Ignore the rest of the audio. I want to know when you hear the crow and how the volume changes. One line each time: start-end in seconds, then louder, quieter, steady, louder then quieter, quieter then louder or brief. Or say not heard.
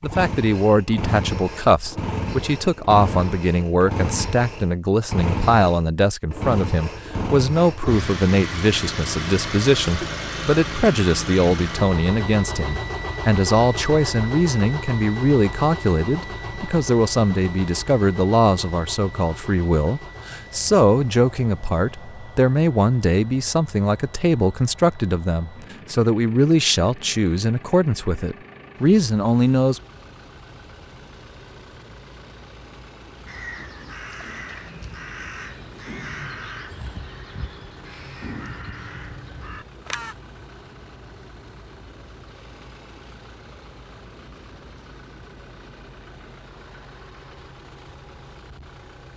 33.2-40.1 steady.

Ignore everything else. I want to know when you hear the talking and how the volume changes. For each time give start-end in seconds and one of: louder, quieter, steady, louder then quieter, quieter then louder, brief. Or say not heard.
0.0-29.8 steady.